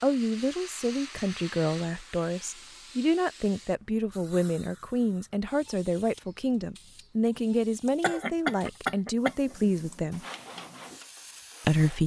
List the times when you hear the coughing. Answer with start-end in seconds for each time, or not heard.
7.8-9.9.